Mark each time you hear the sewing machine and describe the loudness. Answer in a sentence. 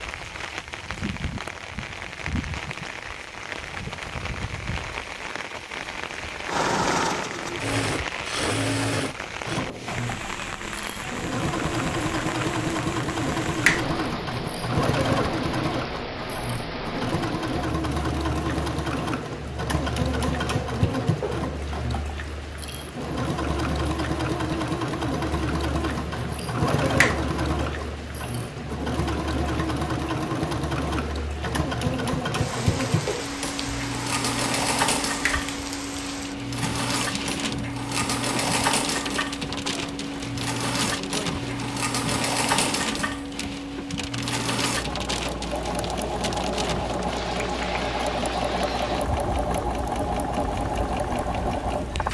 The sewing machine can be heard from 6.5 to 52.0 s, at a steady volume.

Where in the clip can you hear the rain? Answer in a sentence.
The rain can be heard from 0.0 to 52.0 s.